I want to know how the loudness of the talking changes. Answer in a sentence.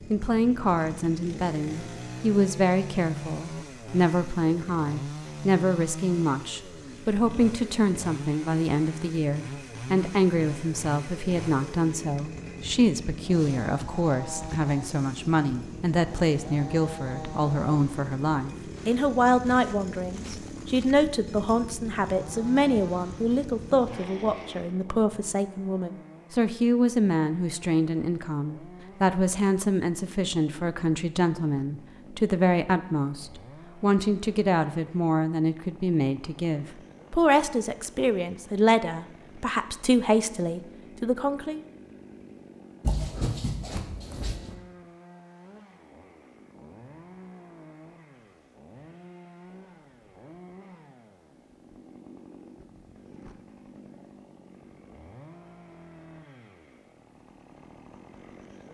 The loudness of the talking stays about the same.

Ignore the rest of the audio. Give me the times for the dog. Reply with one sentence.
The dog can be heard from 42.8 to 44.5 s.